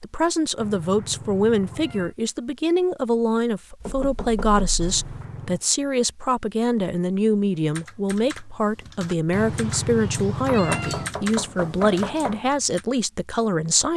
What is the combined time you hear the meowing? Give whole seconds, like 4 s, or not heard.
4 s.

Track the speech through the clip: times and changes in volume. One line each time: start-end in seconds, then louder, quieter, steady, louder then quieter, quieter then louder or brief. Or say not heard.
0.0-13.9 steady.